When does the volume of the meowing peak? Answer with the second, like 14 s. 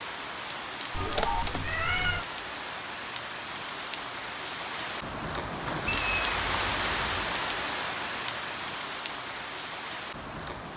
1 s.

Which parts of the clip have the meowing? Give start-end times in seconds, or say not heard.
0.9-2.2, 5.8-7.2.